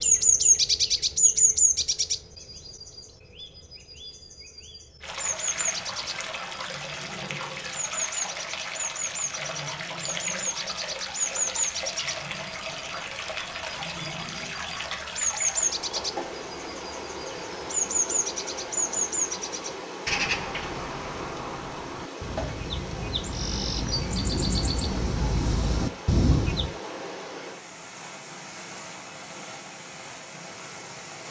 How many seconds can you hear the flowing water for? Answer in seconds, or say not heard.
26 s.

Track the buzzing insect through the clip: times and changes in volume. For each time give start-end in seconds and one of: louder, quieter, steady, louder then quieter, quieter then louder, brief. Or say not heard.
not heard.